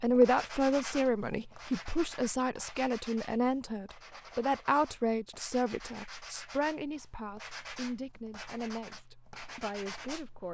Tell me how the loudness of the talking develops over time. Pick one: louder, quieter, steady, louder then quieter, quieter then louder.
quieter.